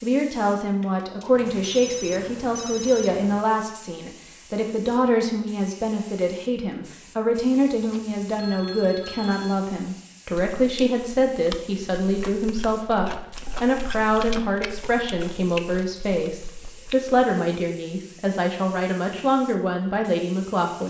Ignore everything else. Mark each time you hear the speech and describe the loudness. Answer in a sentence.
You can hear the speech from 0.0 to 20.8 s, at a steady volume.